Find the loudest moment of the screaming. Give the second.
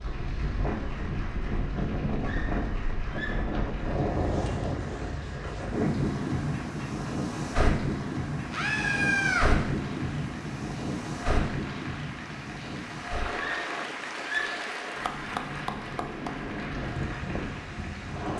9 s.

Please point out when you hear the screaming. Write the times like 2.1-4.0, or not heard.
2.2-3.4, 8.5-9.5, 13.3-14.6.